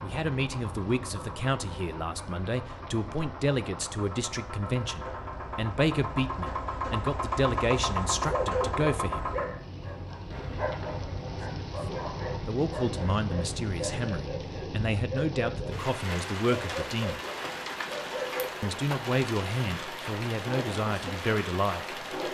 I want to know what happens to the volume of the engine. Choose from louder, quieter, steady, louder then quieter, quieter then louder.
louder then quieter.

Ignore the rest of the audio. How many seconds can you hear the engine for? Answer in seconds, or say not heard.
14 s.